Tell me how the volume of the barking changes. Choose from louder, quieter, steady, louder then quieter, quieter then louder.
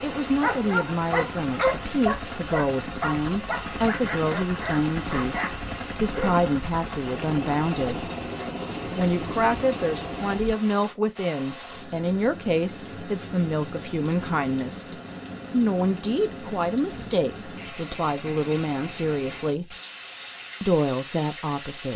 quieter.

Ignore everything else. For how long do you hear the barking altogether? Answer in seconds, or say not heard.
6 s.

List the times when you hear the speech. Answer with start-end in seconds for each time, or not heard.
0.0-8.1, 8.9-14.8, 15.5-19.8, 20.6-21.9.